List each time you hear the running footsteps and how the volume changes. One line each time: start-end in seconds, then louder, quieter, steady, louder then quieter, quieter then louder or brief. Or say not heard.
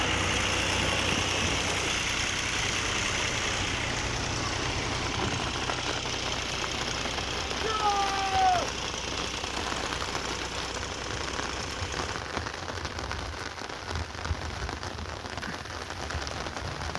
not heard.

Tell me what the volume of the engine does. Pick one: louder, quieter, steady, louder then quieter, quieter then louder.
quieter.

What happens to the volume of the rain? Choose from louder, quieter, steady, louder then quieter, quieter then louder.
steady.